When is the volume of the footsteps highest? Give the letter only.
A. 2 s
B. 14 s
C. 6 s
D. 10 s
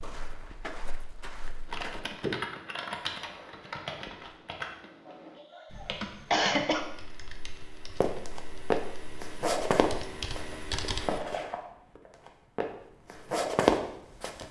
B.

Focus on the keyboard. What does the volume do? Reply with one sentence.
The loudness of the keyboard goes down, then up.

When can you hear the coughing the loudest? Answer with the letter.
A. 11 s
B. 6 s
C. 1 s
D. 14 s
B.